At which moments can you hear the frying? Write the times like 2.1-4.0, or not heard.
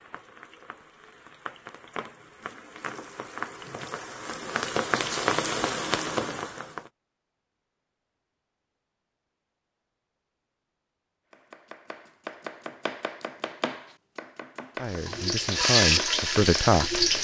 0.0-6.9, 14.8-17.1.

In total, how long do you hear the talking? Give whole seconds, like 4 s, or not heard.
2 s.